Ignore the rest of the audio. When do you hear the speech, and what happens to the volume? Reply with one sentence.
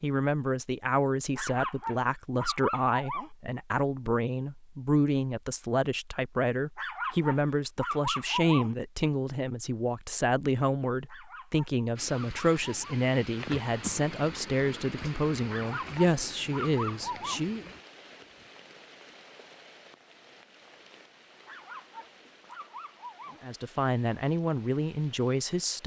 The speech can be heard from 0.0 to 17.7 s, at a steady volume; and briefly from 23.4 to 25.8 s.